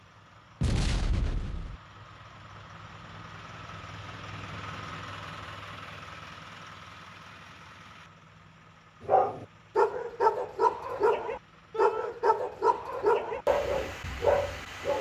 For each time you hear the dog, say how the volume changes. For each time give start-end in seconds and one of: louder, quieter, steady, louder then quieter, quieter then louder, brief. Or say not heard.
9.0-14.9 steady.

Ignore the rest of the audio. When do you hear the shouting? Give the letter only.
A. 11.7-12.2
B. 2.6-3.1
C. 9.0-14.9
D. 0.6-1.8
A.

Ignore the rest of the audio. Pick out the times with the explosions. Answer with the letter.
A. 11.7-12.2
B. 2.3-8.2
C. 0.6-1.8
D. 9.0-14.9
C.